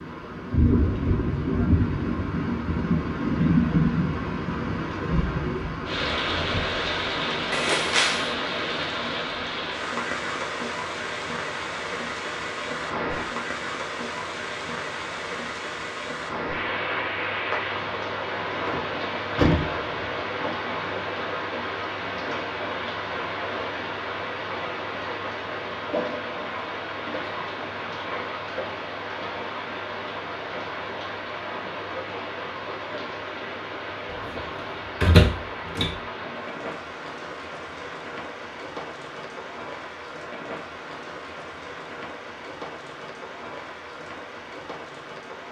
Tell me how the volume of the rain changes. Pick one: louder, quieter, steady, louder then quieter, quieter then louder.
quieter.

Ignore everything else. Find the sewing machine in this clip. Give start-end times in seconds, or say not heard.
not heard.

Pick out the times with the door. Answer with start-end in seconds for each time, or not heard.
7.5-8.3, 18.6-20.1, 35.0-36.0.